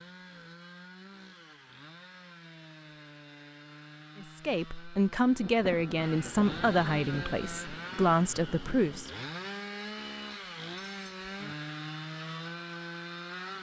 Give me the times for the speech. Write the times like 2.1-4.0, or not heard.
4.2-9.1.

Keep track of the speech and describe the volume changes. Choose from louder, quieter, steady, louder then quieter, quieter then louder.
quieter then louder.